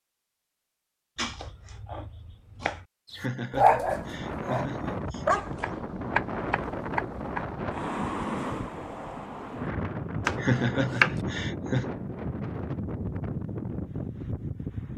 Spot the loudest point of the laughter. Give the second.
11 s.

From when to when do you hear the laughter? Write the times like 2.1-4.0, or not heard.
3.1-5.2, 10.3-11.9.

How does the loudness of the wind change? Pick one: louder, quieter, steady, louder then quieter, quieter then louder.
steady.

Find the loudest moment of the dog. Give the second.
4 s.